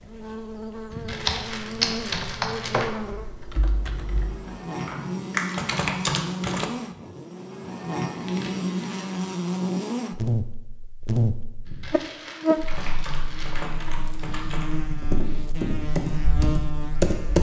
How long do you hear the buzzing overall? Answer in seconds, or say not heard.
17 s.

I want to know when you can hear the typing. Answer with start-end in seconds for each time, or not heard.
1.1-6.7, 12.6-17.3.